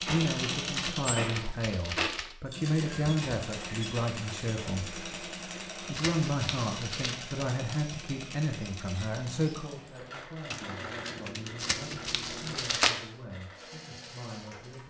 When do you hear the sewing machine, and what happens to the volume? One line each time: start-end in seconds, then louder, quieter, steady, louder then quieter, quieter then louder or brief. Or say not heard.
0.0-14.8 quieter.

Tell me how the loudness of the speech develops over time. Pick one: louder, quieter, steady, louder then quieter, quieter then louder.
quieter.